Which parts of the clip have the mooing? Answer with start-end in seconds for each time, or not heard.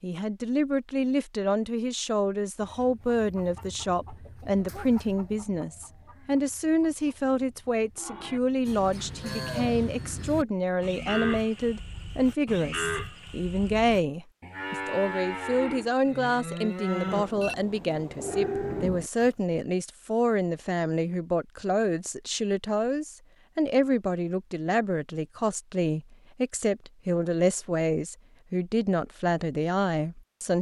8.0-19.3.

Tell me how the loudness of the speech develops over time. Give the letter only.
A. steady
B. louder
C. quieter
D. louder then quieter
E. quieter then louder
A.